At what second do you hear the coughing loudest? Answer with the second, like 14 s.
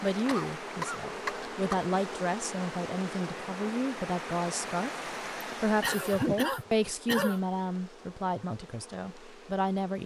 6 s.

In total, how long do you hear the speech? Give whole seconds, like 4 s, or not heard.
9 s.